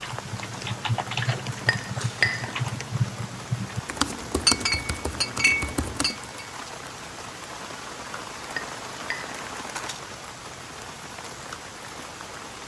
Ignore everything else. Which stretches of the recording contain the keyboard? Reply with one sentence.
The keyboard can be heard from 0.0 to 6.3 s.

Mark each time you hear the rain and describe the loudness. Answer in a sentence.
You can hear the rain from 0.0 to 12.6 s, at a steady volume.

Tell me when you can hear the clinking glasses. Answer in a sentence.
You can hear the clinking glasses from 1.6 to 2.5 s, from 4.5 to 6.5 s and from 8.4 to 9.4 s.